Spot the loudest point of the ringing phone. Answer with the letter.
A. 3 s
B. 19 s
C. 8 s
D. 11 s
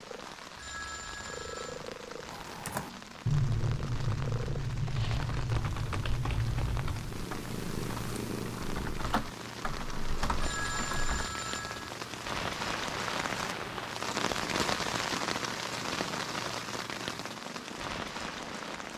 D.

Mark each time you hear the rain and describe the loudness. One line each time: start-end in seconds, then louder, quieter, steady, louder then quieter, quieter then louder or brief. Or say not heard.
0.0-18.9 louder.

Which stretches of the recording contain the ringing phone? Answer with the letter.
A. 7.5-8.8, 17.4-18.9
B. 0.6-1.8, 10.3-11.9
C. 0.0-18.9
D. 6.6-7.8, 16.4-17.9
B.